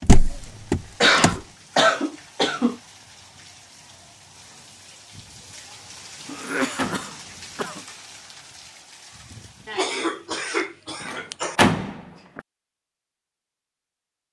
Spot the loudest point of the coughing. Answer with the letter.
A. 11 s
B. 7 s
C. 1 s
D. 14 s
C.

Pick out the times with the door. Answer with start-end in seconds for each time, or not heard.
0.0-1.4, 6.2-7.8, 11.0-12.4.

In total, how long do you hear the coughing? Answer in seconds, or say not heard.
5 s.